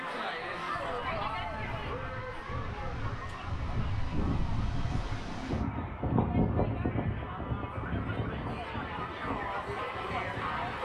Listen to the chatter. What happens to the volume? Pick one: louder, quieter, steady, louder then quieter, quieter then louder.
quieter then louder.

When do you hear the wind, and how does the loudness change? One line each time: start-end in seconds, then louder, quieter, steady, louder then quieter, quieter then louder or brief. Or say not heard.
0.0-10.8 louder then quieter.